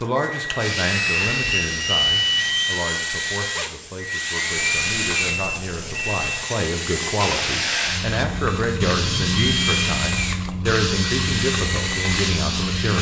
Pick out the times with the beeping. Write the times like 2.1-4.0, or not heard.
0.8-2.7, 4.5-6.5, 8.8-9.8.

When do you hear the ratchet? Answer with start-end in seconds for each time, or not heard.
not heard.